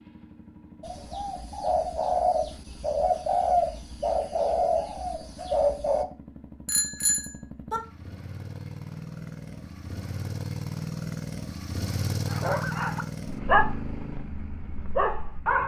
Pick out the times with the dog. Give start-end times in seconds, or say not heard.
12.3-15.6.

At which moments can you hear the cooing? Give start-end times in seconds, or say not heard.
0.8-6.0.